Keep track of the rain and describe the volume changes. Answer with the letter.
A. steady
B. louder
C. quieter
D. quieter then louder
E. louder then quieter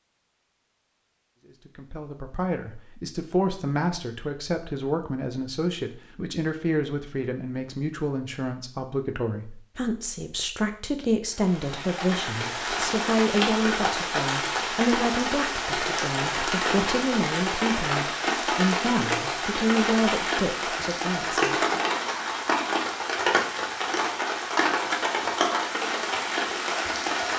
A.